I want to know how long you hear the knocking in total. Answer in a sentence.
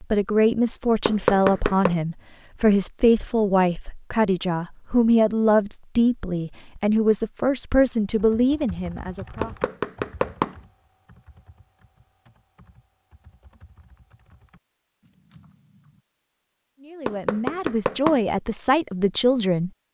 The knocking can be heard for 3 seconds in total.